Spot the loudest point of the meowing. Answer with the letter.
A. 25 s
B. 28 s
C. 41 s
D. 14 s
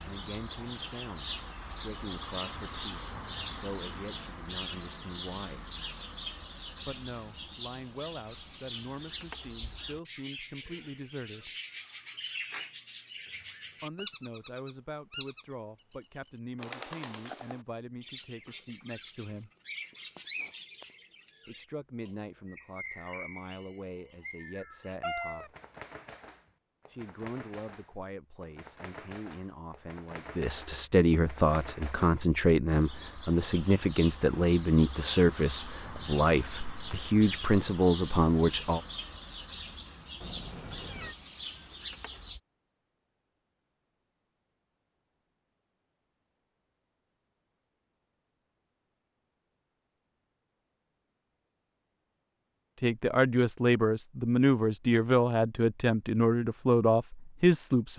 A.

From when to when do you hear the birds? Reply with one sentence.
You can hear the birds from 0.0 to 42.4 s.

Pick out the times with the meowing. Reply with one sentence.
The meowing can be heard from 25.0 to 25.5 s and from 40.2 to 41.1 s.